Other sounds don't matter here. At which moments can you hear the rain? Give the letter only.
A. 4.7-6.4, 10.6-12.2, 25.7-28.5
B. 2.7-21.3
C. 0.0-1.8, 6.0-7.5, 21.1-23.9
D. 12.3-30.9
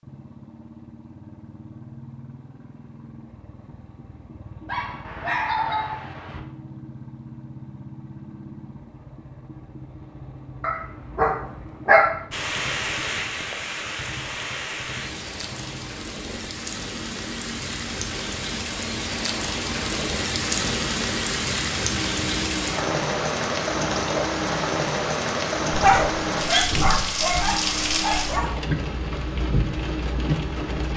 D.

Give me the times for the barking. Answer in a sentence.
You can hear the barking from 4.7 to 6.4 s, from 10.6 to 12.2 s and from 25.7 to 28.5 s.